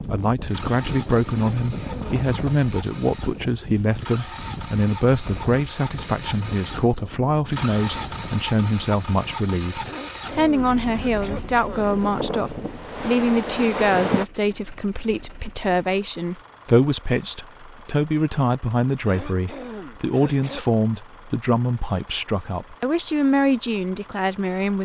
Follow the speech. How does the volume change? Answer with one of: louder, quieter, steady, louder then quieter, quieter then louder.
steady.